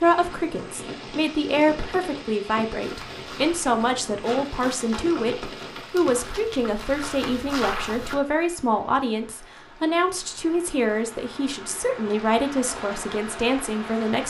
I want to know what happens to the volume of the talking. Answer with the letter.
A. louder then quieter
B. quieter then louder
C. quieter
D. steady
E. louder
D.